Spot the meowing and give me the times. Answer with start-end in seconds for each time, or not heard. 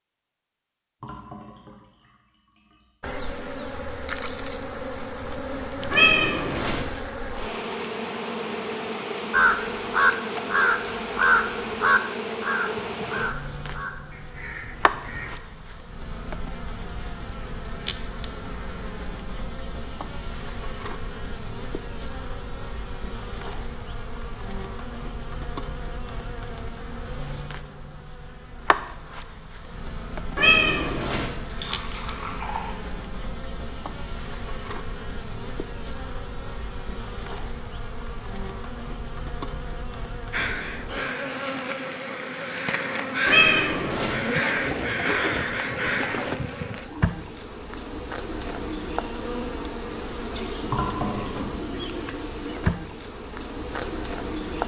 5.9-6.8, 30.4-31.3, 43.2-44.1.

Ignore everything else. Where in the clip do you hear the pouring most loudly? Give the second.
51 s.